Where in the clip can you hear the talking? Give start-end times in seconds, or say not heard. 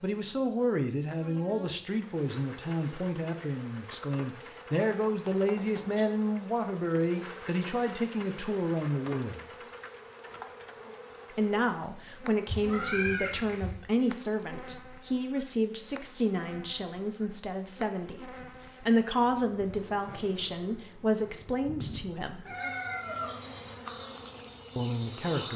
0.0-9.4, 11.3-22.6, 24.8-25.5.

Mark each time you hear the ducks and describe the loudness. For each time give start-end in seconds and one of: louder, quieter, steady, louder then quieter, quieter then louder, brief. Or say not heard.
not heard.